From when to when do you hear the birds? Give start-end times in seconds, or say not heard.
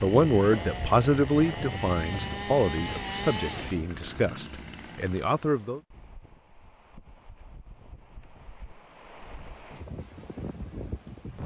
not heard.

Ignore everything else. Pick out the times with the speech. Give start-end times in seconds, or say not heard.
0.0-5.8.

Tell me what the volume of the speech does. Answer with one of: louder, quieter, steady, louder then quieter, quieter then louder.
quieter.